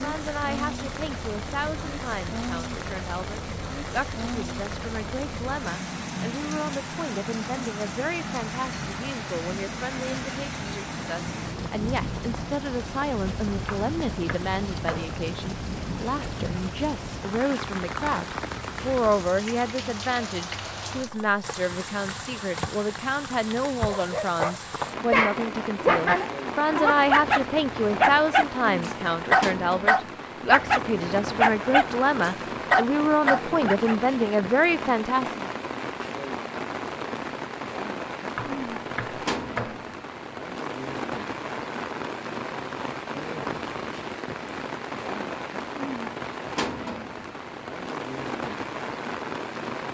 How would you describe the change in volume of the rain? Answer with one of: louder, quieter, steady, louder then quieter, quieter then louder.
steady.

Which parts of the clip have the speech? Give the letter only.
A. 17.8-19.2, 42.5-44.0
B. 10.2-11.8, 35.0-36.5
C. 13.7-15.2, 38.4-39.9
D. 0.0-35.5
D.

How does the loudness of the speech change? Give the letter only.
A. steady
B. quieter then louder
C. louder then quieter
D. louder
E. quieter
D.